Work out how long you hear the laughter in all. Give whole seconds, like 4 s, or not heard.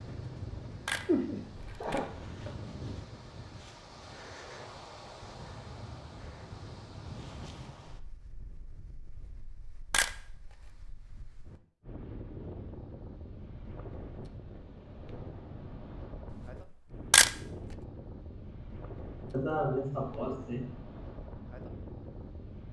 3 s.